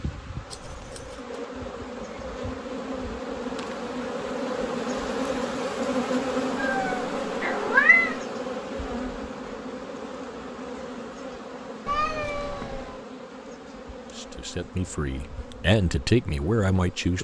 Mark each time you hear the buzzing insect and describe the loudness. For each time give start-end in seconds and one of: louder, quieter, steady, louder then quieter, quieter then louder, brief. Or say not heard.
0.0-17.1 louder then quieter.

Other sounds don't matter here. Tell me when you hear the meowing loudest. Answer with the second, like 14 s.
8 s.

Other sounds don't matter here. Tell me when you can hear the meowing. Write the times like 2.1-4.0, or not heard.
0.5-1.2, 6.5-8.2, 11.8-13.1.